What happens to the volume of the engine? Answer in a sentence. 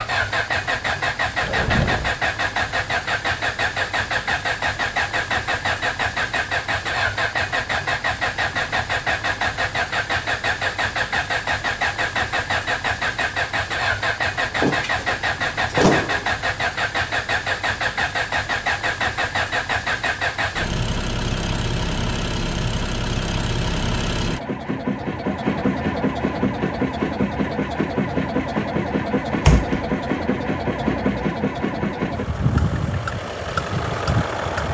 The loudness of the engine stays about the same.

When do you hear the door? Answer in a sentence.
You can hear the door from 1.4 to 2.1 s, from 14.4 to 16.4 s and from 29.4 to 29.9 s.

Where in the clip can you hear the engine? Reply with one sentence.
The engine can be heard from 0.0 to 34.6 s.